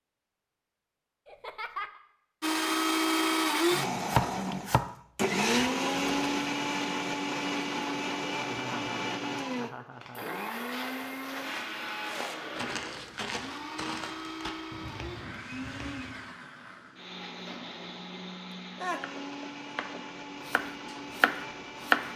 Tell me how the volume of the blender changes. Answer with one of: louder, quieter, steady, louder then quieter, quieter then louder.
quieter.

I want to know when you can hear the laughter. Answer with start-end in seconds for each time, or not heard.
1.2-2.0, 8.3-10.2, 18.8-20.1.